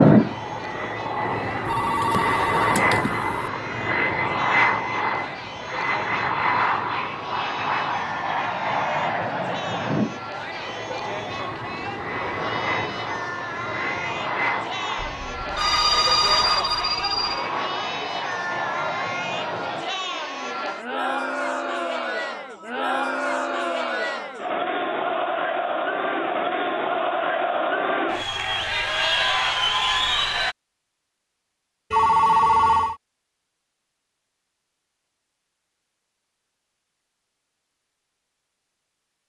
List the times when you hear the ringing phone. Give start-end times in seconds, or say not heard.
1.6-3.4, 14.9-17.4, 31.9-33.0.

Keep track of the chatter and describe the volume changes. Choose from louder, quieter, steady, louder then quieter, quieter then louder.
louder.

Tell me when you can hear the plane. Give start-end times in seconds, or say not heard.
0.0-19.9.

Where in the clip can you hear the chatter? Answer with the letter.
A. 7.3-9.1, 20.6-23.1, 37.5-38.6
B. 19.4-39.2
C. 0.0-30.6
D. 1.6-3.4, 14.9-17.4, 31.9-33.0
C.